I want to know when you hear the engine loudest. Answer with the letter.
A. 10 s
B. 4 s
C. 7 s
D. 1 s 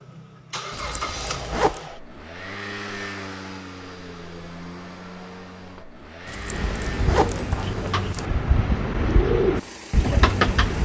D.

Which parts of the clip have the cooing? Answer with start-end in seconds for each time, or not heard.
6.5-10.8.